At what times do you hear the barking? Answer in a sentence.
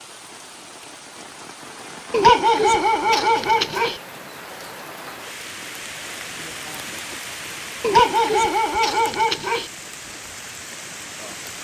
You can hear the barking from 2.1 to 4.0 s and from 7.8 to 9.7 s.